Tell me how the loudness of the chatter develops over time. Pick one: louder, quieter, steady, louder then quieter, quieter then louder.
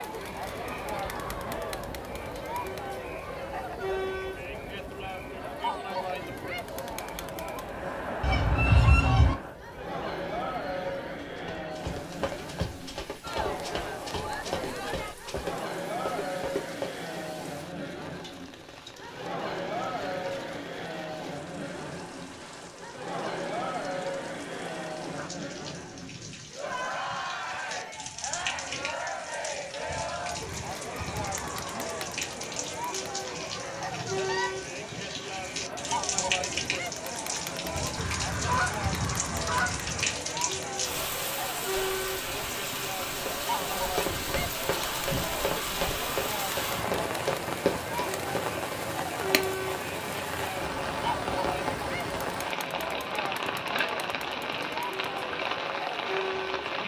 steady.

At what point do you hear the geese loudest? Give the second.
9 s.